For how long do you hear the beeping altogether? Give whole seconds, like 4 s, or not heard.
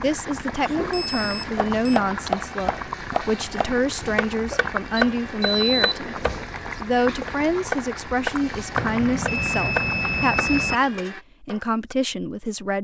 5 s.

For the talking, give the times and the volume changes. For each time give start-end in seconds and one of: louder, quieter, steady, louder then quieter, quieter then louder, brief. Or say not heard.
0.0-12.7 steady.